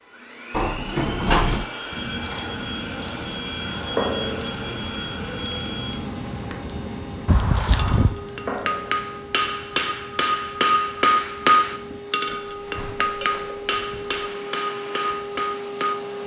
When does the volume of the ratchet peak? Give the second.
4 s.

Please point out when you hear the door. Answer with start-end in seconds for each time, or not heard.
0.5-1.6, 7.2-8.2, 12.2-14.2.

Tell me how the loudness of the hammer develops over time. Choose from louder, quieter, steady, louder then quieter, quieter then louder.
louder then quieter.